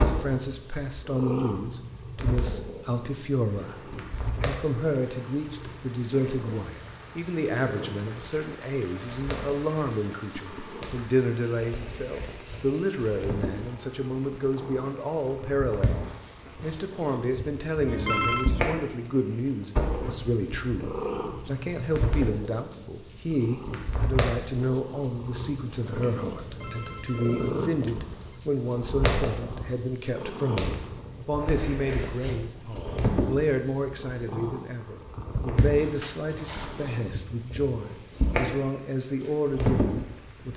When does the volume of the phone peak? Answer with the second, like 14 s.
18 s.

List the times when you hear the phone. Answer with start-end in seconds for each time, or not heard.
17.9-18.5, 26.4-28.4.